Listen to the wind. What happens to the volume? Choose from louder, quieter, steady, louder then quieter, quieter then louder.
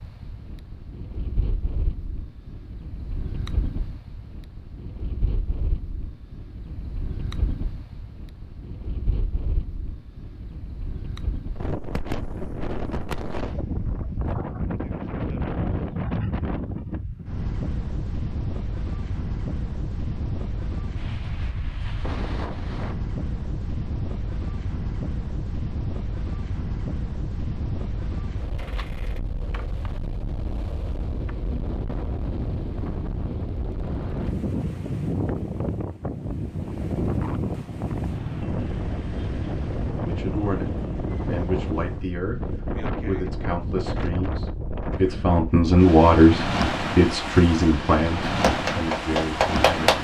louder.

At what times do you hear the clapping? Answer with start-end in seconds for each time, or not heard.
48.2-50.0.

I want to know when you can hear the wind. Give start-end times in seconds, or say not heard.
0.0-50.0.